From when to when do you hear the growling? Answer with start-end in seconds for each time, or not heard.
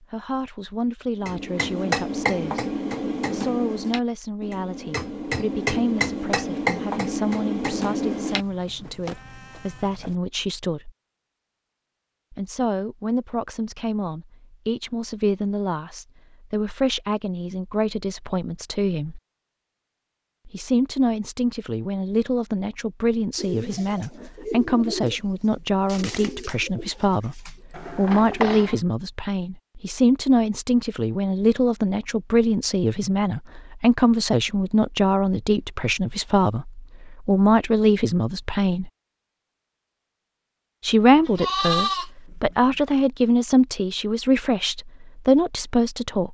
not heard.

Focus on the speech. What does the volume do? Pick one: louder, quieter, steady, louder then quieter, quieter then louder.
louder.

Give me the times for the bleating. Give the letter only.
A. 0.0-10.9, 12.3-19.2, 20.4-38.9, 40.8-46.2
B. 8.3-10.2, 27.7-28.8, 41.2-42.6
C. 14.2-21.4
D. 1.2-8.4
B.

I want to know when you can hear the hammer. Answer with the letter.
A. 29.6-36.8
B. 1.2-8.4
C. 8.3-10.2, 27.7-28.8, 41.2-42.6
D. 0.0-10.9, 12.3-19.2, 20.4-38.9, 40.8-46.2
B.